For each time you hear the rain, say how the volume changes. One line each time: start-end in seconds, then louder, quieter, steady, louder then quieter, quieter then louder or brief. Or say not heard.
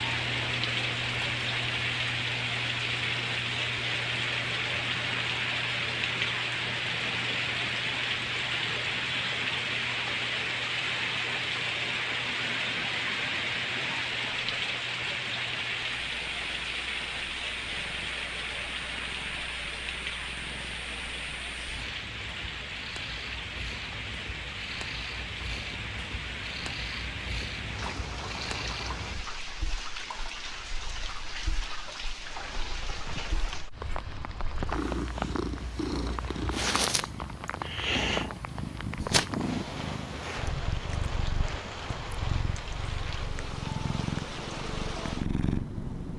0.0-46.1 quieter.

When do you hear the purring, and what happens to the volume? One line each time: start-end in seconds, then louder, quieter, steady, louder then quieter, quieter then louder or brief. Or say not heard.
0.0-46.1 quieter then louder.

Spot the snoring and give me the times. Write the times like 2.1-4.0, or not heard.
not heard.